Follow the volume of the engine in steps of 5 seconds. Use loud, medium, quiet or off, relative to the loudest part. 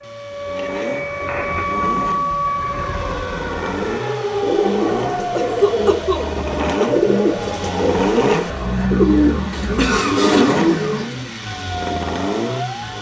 medium, loud, loud.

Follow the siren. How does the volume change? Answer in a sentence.
The volume of the siren goes down.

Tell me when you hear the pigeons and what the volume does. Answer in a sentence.
You can hear the pigeons from 0.9 to 11.3 s, getting louder.